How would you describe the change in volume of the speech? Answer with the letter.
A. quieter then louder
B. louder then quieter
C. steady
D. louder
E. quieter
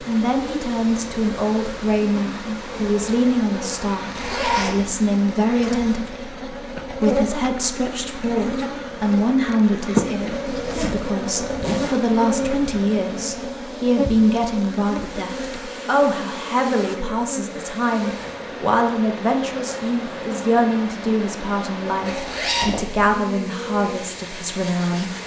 C.